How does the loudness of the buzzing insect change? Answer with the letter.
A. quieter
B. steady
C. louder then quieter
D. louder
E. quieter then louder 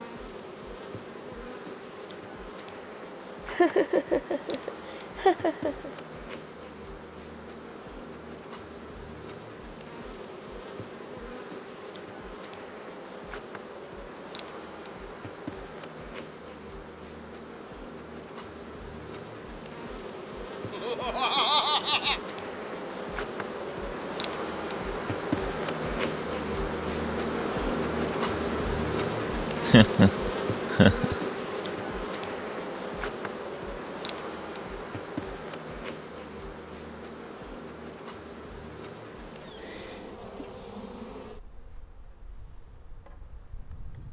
C.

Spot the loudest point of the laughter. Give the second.
30 s.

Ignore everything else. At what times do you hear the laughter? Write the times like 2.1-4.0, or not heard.
3.5-5.9, 20.7-22.2, 29.6-30.1, 30.7-31.1.